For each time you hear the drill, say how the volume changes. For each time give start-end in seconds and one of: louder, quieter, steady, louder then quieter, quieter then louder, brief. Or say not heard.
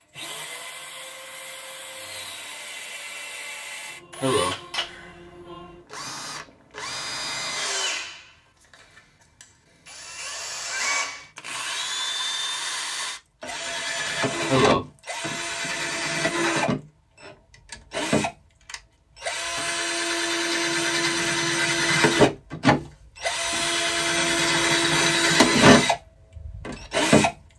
0.1-27.3 louder.